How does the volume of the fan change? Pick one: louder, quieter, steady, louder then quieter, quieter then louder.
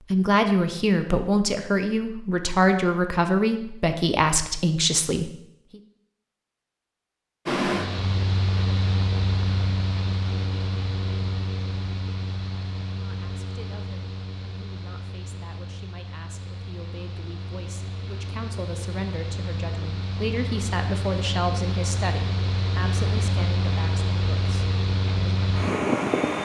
quieter then louder.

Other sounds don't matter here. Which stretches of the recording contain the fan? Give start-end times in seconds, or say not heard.
7.5-26.4.